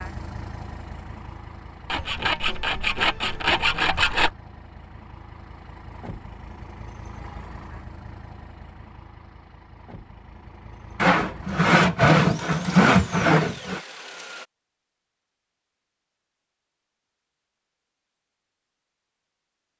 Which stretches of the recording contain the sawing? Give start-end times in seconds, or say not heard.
1.9-4.3, 10.9-13.8.